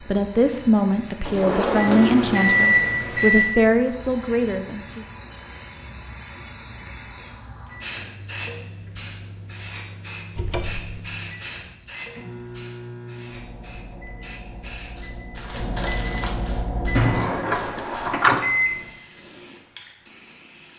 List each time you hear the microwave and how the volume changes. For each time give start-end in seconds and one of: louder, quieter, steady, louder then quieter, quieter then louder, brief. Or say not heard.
1.8-3.5 brief
7.6-18.9 louder.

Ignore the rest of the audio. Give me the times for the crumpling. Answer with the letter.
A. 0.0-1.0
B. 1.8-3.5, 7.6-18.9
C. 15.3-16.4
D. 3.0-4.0
C.